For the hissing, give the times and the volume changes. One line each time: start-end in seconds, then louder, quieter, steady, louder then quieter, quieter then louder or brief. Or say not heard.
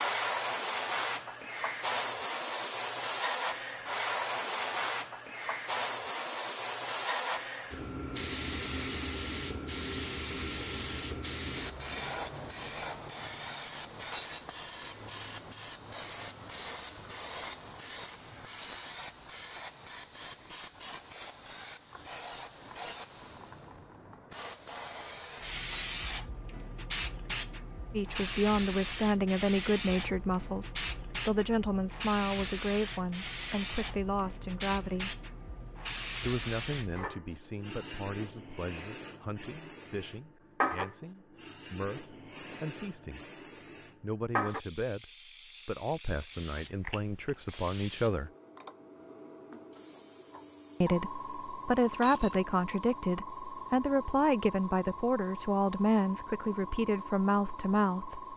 0.0-58.3 quieter.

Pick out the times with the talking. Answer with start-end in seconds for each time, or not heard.
27.9-35.1, 36.2-43.2, 44.0-48.3, 50.8-58.3.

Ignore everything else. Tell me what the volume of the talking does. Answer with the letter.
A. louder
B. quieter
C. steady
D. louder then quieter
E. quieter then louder
E.